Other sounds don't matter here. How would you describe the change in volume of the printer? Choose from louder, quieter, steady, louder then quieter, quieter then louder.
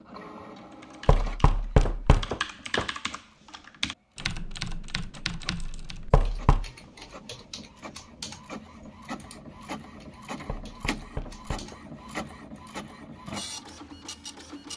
quieter then louder.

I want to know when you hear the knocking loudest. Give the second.
2 s.